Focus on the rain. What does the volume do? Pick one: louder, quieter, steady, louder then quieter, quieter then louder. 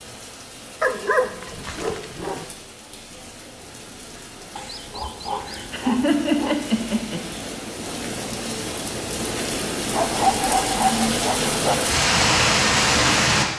louder.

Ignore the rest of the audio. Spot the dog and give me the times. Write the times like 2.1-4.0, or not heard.
0.8-2.5, 4.5-6.5, 9.9-11.8.